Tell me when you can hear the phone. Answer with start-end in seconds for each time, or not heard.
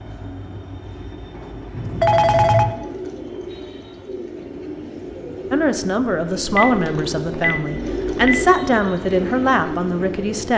1.7-2.8, 6.4-8.4.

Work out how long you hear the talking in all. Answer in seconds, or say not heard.
5 s.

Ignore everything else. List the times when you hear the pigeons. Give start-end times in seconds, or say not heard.
2.5-10.5.